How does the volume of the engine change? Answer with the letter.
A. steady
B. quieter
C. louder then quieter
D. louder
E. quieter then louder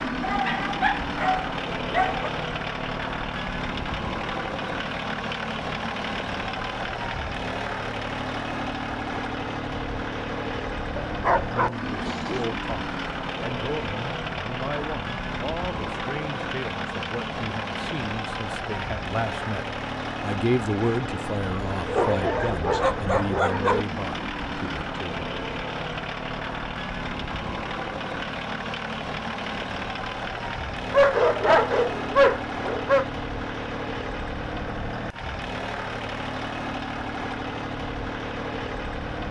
A.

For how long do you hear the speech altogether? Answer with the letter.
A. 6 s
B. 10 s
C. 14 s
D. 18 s
C.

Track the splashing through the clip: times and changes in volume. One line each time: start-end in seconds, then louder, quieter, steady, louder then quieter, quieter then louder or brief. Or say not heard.
not heard.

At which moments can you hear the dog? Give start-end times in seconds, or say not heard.
0.2-2.3, 10.9-12.5, 21.9-23.9, 30.9-33.0.